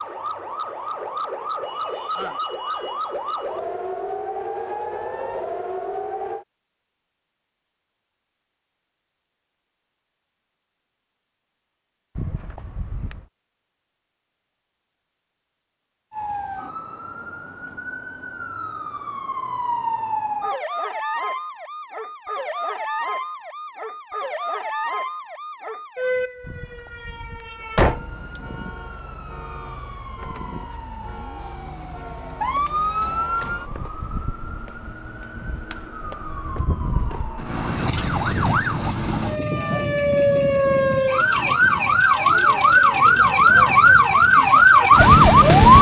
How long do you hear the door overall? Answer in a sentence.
The door can be heard for 3 seconds in total.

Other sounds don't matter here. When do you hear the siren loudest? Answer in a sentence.
The volume of the siren peaks at 45 seconds.